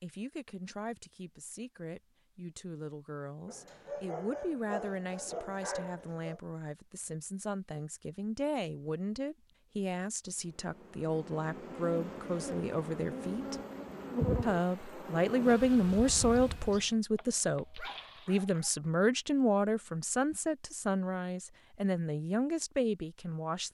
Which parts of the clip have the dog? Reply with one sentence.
You can hear the dog from 3.5 to 6.4 s and from 17.1 to 18.7 s.